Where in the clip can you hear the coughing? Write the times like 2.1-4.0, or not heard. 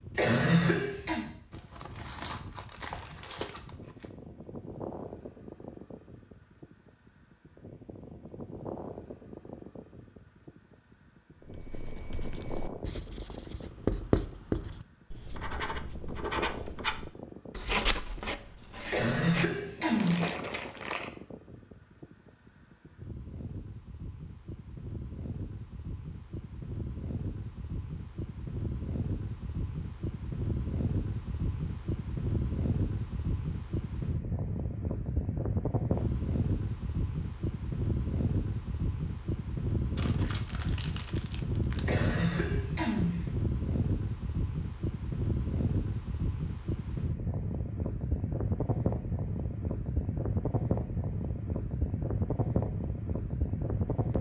0.1-1.2, 18.9-20.4, 41.9-43.3.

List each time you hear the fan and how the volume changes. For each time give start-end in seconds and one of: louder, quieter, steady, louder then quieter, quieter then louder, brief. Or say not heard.
0.0-54.1 louder.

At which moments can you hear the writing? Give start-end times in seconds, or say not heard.
11.4-19.5.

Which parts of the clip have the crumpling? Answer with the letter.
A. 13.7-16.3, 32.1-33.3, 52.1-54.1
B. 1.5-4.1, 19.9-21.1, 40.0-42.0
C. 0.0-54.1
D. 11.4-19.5
B.